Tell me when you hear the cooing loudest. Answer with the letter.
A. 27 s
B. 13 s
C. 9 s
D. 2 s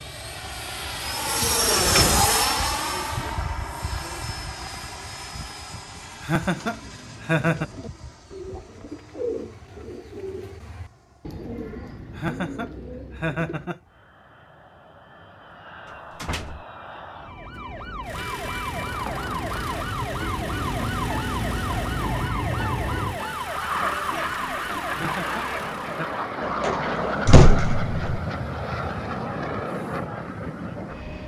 C.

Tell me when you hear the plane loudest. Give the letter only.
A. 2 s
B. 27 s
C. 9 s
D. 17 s
A.